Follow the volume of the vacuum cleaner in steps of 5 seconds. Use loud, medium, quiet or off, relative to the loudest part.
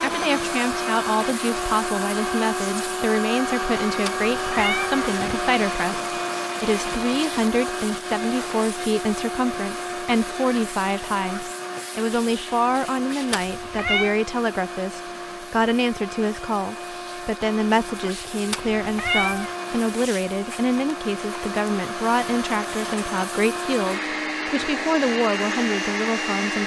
loud, loud, medium, medium, loud, loud.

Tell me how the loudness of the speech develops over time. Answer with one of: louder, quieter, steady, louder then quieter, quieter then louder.
steady.